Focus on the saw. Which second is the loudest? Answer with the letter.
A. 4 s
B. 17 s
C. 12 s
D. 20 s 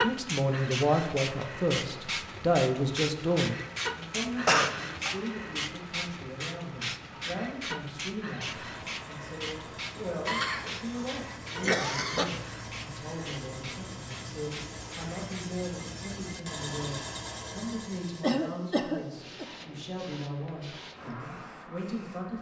B.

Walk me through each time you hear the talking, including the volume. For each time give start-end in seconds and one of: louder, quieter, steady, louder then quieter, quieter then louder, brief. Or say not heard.
0.0-22.3 quieter.